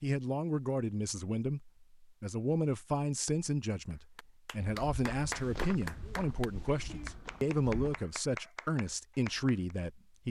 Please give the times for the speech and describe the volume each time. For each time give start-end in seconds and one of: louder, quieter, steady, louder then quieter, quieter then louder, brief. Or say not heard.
0.0-10.2 steady.